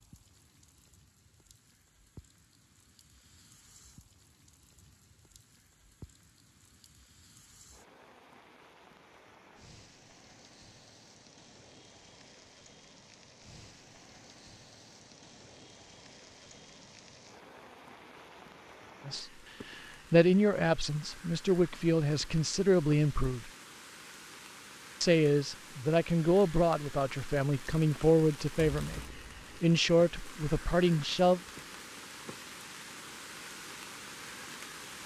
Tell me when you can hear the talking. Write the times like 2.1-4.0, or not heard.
19.1-23.5, 25.0-29.0, 29.6-31.4.